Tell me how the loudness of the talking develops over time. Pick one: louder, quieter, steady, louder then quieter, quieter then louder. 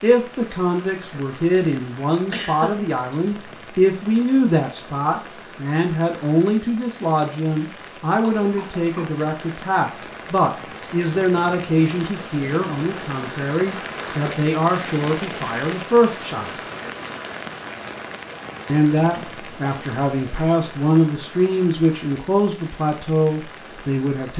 steady.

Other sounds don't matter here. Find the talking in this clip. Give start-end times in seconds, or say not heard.
0.0-16.5, 18.6-24.3.